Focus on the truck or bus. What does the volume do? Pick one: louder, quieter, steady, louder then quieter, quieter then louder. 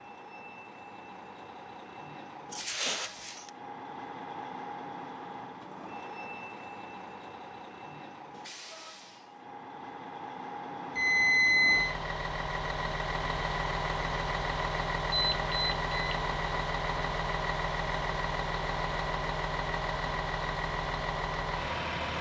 louder.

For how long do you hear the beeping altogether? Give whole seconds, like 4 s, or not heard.
3 s.